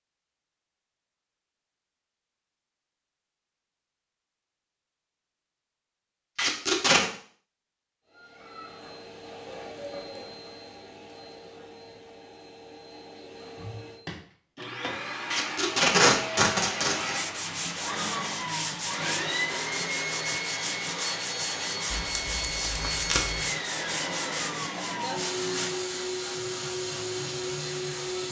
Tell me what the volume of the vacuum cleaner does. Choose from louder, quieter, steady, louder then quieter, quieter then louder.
louder.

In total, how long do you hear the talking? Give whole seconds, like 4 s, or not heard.
not heard.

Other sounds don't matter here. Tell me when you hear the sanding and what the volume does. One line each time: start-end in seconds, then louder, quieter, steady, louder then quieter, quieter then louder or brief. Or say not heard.
16.9-25.9 steady.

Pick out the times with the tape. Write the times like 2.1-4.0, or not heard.
6.3-7.0, 15.3-17.2, 21.9-23.4.